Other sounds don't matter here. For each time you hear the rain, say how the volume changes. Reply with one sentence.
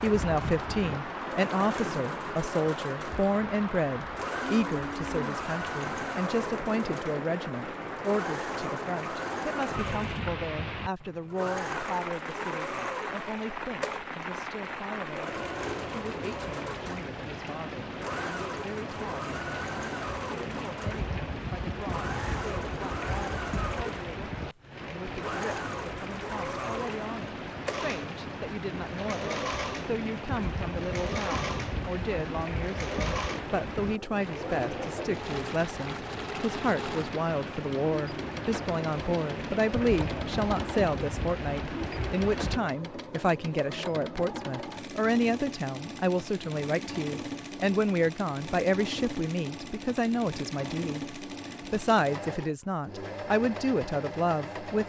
The rain can be heard from 0.0 to 42.6 s, at a steady volume.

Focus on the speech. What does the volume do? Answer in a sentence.
The loudness of the speech goes down, then up.